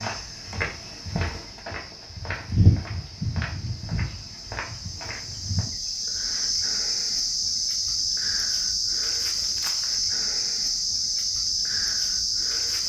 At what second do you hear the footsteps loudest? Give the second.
3 s.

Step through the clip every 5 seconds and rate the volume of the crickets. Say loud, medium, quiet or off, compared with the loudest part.
quiet, loud, loud.